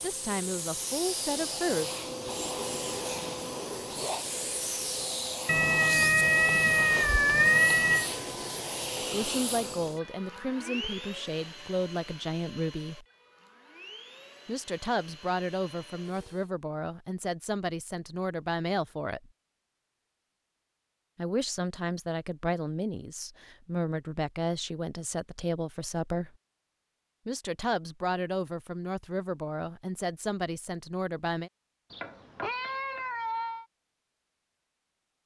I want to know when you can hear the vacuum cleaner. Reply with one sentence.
You can hear the vacuum cleaner from 0.0 to 16.5 s.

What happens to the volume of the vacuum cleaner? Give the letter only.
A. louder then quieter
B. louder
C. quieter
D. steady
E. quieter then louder
C.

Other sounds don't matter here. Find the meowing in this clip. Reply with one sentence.
The meowing can be heard from 5.5 to 8.1 s and from 31.9 to 33.6 s.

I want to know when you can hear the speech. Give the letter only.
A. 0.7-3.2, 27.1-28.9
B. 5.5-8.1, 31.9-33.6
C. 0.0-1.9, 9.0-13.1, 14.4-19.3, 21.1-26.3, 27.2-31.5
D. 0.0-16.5
C.